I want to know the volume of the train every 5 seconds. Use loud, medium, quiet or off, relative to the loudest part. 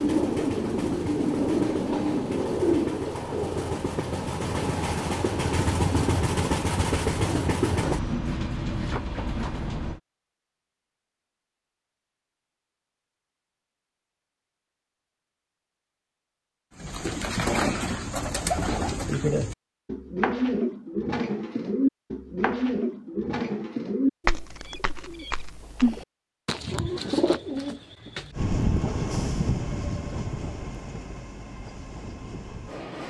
loud, loud, off, off, off, loud, medium.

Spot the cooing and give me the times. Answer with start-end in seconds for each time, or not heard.
0.0-3.0, 16.8-28.4.